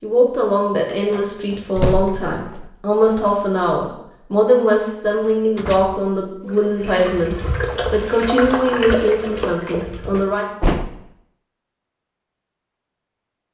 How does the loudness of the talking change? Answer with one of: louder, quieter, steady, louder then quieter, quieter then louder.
steady.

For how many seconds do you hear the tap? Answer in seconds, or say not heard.
4 s.